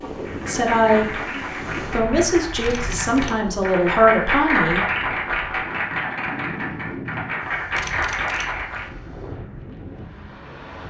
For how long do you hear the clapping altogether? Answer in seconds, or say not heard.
9 s.